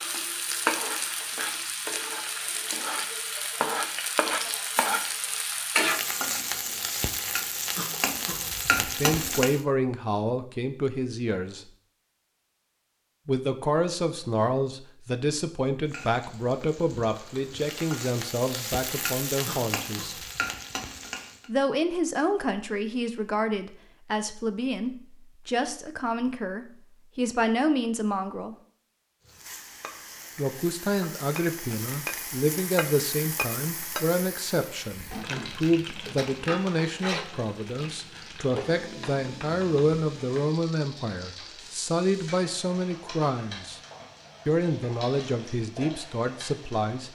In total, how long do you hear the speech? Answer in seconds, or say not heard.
33 s.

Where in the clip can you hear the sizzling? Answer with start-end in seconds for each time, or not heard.
0.0-9.6, 15.8-21.5, 29.2-47.1.